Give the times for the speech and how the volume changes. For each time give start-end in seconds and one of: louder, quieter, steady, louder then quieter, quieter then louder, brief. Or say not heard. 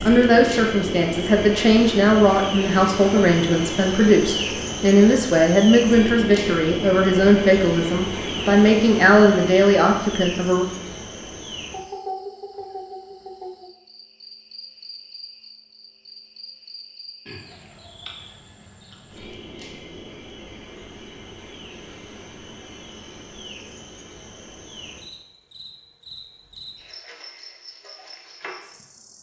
0.0-10.7 steady.